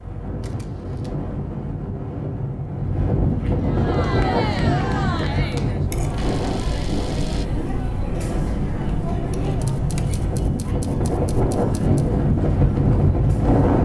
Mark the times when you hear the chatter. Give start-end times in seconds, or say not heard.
3.6-13.6.